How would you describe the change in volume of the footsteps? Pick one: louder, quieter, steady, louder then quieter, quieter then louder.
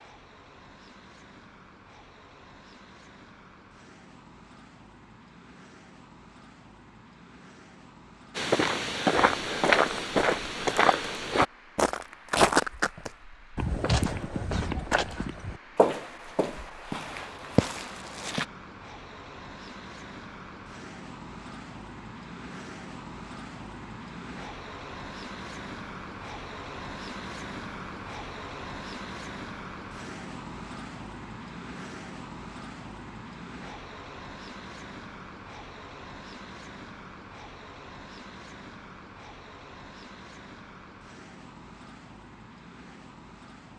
quieter.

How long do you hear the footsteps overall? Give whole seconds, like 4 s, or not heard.
10 s.